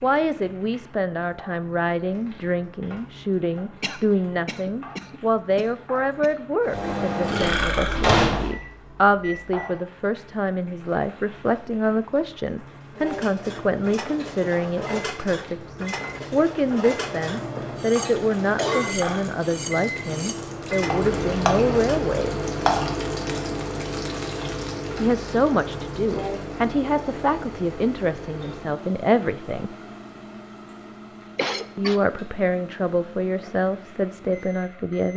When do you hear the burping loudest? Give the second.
8 s.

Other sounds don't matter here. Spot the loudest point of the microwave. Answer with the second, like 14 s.
8 s.